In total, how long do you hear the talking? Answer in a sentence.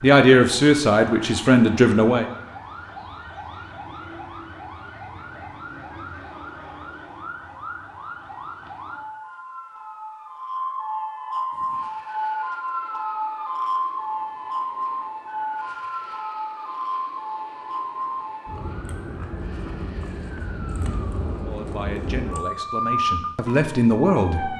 You can hear the talking for 5 seconds altogether.